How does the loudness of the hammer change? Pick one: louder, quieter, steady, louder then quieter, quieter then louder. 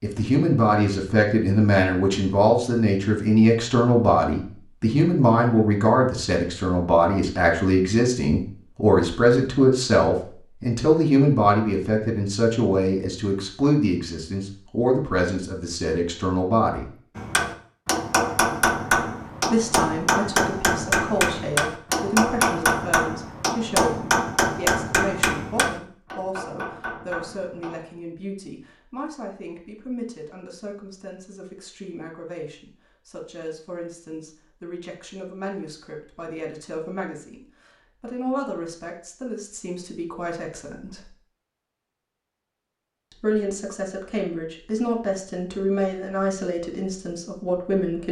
quieter.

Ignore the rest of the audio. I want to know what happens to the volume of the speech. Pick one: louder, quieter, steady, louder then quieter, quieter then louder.
quieter then louder.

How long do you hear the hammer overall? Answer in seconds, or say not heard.
11 s.